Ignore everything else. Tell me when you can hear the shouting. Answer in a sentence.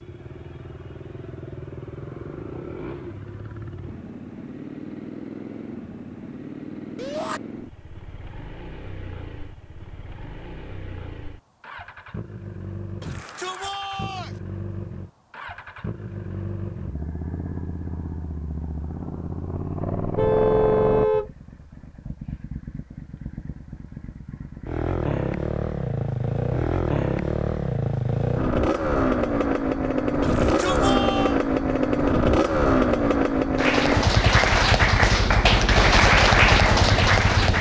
The shouting can be heard from 7.0 to 7.4 s, from 13.0 to 14.4 s and from 30.2 to 31.4 s.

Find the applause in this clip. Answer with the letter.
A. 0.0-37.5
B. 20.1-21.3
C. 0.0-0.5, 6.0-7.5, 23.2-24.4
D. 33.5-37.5
D.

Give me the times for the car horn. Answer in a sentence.
The car horn can be heard from 20.1 to 21.3 s.